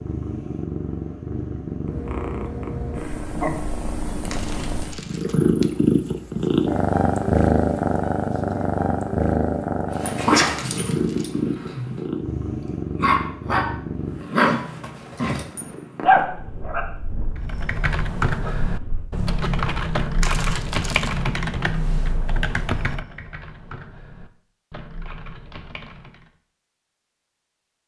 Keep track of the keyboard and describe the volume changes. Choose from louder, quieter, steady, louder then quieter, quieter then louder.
quieter.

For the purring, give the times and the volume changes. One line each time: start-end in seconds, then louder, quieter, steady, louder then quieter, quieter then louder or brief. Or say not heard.
0.0-16.2 louder then quieter.